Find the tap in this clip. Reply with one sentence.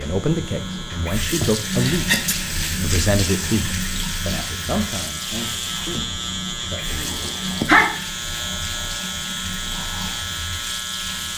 The tap can be heard from 0.0 to 11.3 s.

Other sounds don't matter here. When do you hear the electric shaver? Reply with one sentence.
You can hear the electric shaver from 0.0 to 11.3 s.